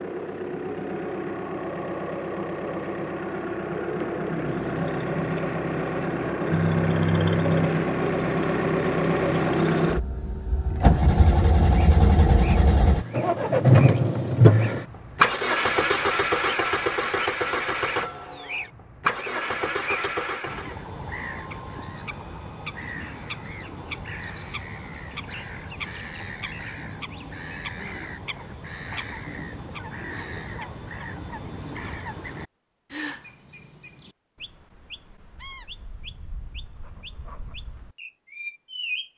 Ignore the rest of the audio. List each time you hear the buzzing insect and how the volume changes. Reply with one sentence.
You can't hear the buzzing insect here.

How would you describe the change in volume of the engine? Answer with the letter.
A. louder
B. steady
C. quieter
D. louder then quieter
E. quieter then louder
D.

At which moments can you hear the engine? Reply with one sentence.
The engine can be heard from 0.0 to 20.8 s.